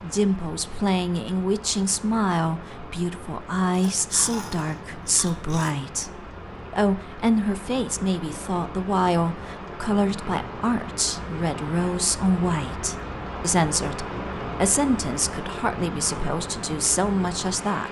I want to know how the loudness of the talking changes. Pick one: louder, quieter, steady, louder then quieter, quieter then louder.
steady.